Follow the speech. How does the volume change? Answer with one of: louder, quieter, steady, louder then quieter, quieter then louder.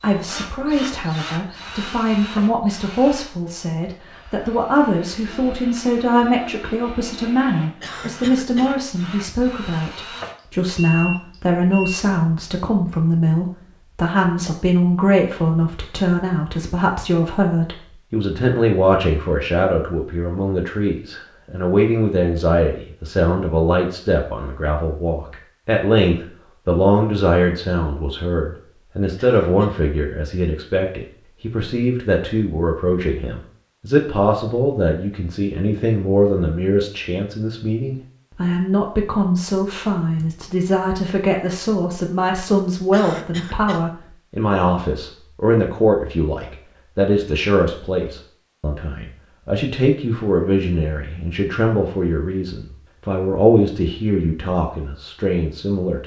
steady.